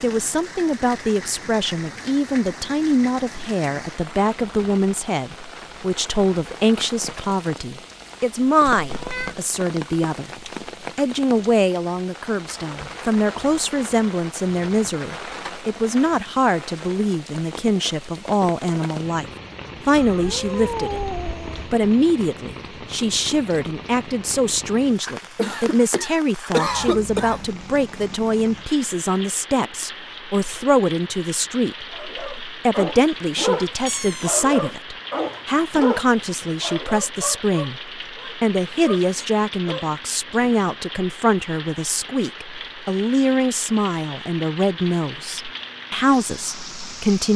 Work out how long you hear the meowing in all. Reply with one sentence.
You can hear the meowing for 3 seconds altogether.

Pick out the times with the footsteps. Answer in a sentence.
You can't hear the footsteps here.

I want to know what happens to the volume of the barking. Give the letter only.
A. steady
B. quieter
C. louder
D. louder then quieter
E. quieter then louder
B.